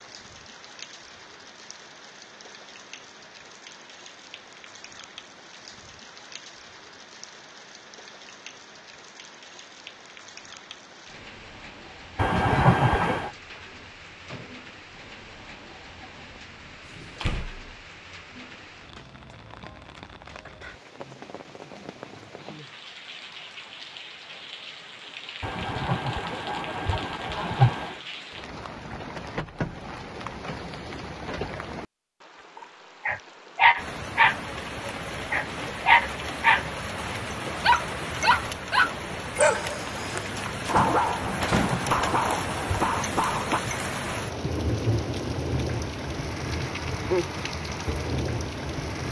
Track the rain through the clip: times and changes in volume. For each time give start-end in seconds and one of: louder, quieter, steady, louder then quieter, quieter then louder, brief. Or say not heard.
0.0-49.0 louder.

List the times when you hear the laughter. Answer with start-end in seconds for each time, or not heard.
12.2-13.3, 25.4-27.9, 41.2-43.0.